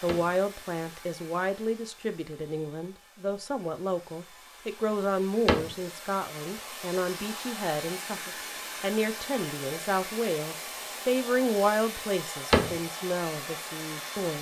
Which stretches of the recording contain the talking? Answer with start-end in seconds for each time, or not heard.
0.0-14.3.